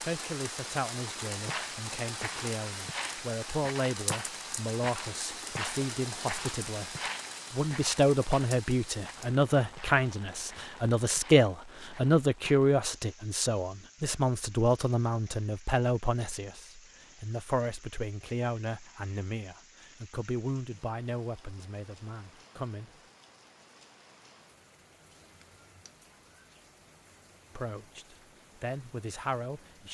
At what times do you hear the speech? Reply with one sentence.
You can hear the speech from 0.0 to 6.9 s, from 7.5 to 22.9 s and from 27.6 to 29.9 s.